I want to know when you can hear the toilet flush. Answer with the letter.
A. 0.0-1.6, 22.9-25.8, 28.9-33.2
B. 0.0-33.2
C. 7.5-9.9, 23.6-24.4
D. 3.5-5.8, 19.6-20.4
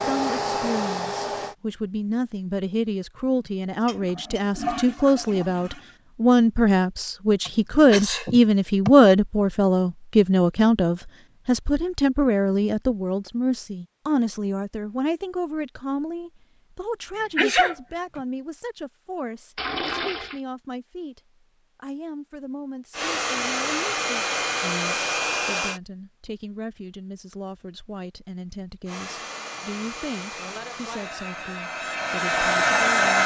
D.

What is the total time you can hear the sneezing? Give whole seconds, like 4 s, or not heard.
2 s.